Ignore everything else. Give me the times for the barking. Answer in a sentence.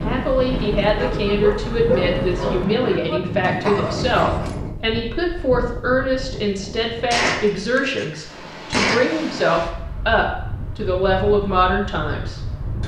You can hear the barking from 0.0 to 4.7 s.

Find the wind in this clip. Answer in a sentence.
The wind can be heard from 0.0 to 12.8 s.